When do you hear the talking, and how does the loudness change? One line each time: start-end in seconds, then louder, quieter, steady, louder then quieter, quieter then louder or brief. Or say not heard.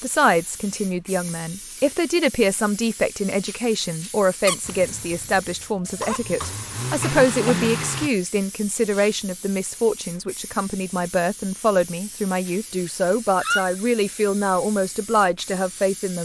0.0-16.2 steady.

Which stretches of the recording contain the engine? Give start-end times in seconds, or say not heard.
4.6-8.1.